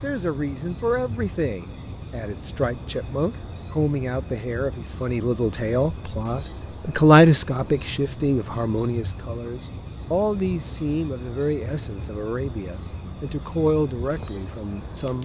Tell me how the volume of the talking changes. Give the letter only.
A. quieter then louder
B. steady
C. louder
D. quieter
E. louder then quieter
E.